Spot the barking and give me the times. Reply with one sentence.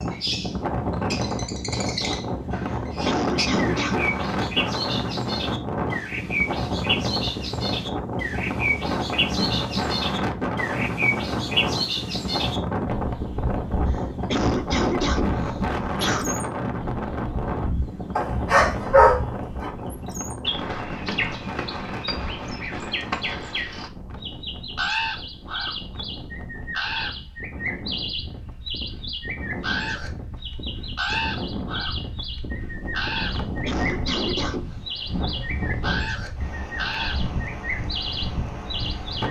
You can hear the barking from 18.1 to 19.7 s.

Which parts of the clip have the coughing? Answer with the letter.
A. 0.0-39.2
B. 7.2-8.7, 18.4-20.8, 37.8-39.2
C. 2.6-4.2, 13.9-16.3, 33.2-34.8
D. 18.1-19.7
C.